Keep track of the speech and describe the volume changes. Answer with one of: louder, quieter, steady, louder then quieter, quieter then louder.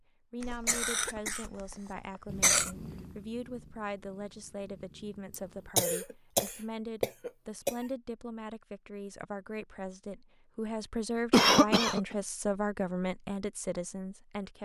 louder.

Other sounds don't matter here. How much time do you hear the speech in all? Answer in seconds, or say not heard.
14 s.